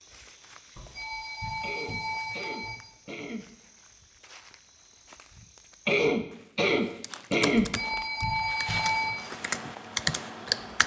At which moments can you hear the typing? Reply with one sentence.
You can hear the typing from 7.0 to 10.8 s.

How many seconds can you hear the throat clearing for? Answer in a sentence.
The throat clearing can be heard for 4 seconds in total.